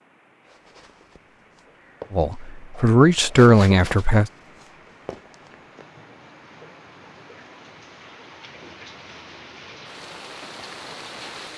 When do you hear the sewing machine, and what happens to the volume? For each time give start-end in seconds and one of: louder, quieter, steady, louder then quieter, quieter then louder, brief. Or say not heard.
not heard.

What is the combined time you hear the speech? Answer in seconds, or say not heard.
2 s.